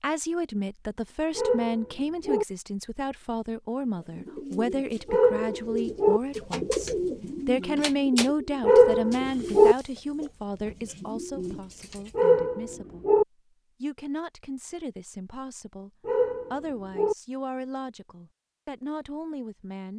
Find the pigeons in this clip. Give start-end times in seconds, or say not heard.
4.0-12.2.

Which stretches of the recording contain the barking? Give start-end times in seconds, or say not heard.
1.4-2.5, 5.0-6.2, 8.6-9.8, 12.2-13.2, 16.1-17.1.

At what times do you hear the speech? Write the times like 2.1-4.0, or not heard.
0.0-13.1, 13.8-15.9, 16.5-19.9.